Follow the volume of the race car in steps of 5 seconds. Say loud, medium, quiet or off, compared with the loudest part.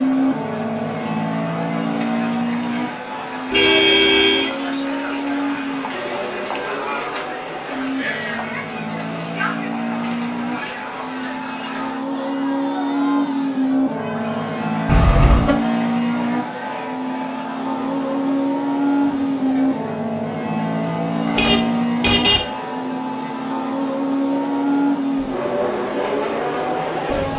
loud, medium, loud, loud, loud, loud.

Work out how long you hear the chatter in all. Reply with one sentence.
The chatter can be heard for 27 seconds in total.